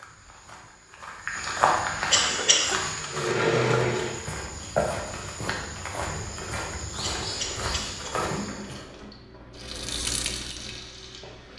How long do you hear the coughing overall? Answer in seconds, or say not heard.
2 s.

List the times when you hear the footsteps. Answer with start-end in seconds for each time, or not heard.
0.0-8.8.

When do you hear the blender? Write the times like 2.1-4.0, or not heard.
2.2-4.2.